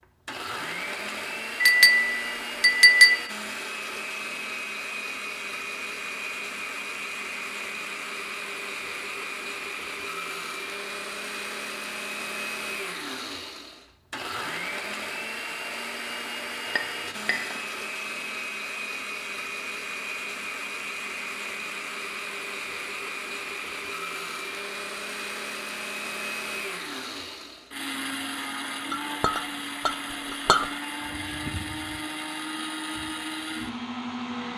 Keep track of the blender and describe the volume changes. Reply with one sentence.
The loudness of the blender stays about the same.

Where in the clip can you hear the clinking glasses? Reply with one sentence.
The clinking glasses can be heard from 1.6 to 3.2 s, from 16.6 to 17.6 s and from 28.9 to 30.6 s.